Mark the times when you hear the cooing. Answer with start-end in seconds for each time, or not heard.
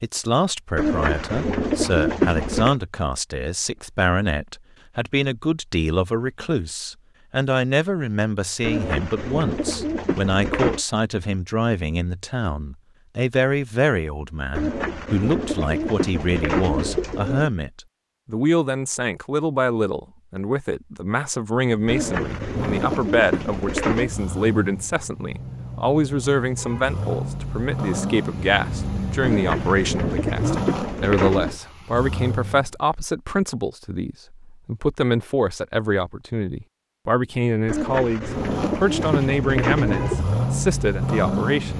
0.8-2.8, 8.6-10.8, 14.5-17.5, 21.9-24.1, 29.2-31.6, 37.6-40.2.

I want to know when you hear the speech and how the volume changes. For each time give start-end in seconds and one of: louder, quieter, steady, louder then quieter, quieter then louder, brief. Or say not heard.
0.0-41.7 steady.